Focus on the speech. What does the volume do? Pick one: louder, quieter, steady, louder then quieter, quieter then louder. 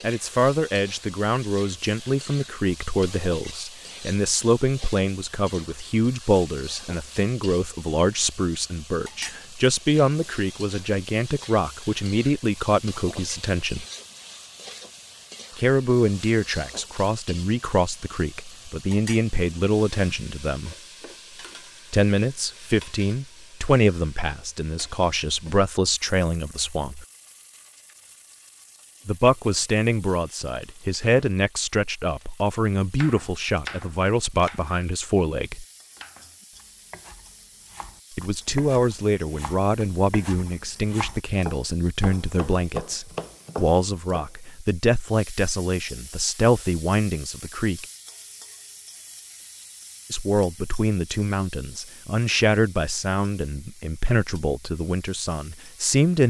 steady.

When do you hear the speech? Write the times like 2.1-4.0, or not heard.
0.0-13.8, 15.6-20.8, 21.9-27.1, 29.1-35.6, 38.1-47.9, 50.1-56.2.